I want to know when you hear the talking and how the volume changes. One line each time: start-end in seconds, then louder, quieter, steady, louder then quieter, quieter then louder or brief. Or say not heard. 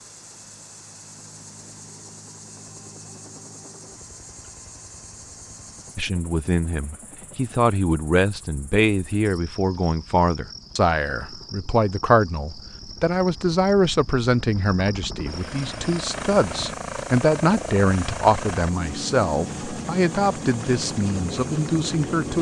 6.0-22.3 steady.